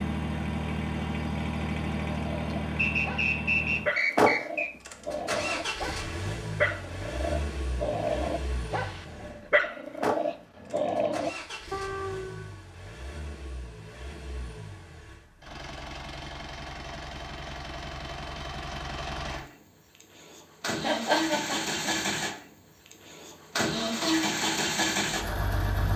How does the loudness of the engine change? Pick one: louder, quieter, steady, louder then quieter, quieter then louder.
quieter then louder.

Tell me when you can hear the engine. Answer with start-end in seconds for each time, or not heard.
0.0-25.9.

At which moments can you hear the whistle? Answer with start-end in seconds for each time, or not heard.
2.8-4.7.